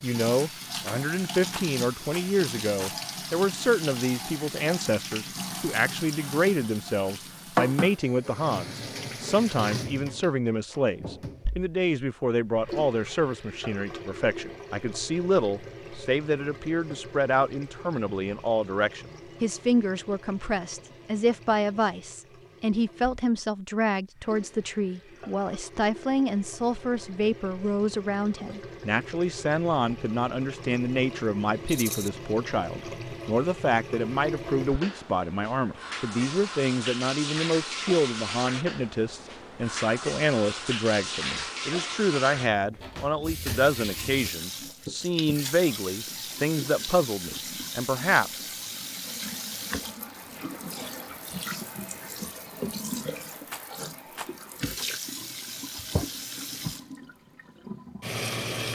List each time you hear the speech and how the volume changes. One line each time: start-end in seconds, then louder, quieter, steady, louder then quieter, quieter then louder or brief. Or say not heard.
0.0-48.5 steady.